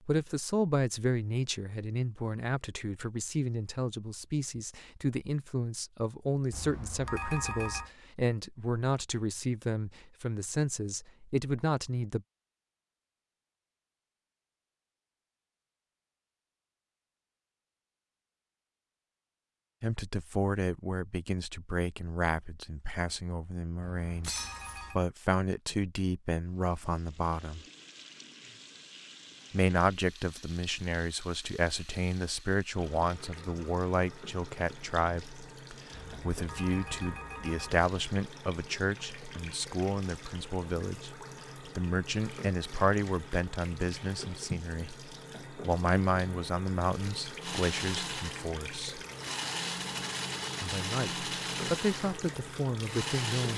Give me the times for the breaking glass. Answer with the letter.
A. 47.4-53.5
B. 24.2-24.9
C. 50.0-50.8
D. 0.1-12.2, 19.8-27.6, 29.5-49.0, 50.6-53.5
B.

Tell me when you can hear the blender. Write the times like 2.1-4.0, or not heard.
47.4-53.5.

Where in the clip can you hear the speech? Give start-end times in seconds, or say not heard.
0.1-12.2, 19.8-27.6, 29.5-49.0, 50.6-53.5.